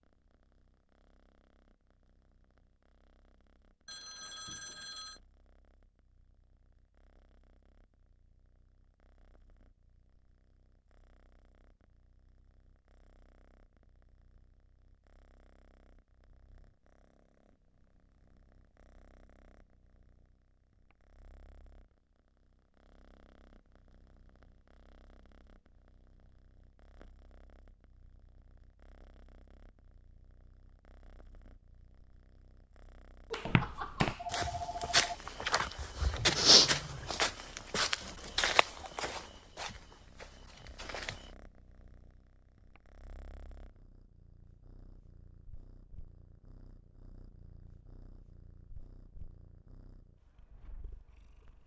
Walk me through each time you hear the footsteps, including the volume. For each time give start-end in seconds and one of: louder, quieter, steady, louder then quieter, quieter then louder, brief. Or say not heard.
33.5-41.2 louder then quieter.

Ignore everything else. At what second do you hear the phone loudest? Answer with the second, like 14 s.
34 s.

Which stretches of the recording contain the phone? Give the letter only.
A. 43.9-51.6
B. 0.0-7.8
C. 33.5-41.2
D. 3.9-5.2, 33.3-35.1
D.